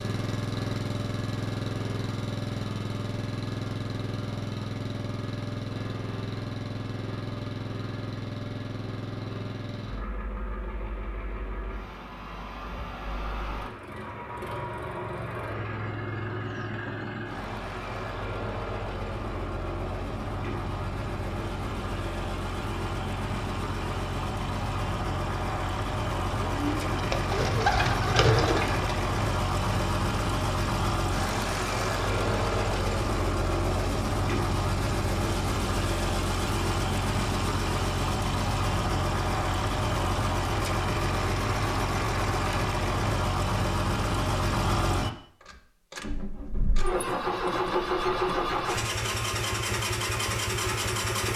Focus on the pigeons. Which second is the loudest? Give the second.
28 s.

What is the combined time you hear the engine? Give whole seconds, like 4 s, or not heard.
51 s.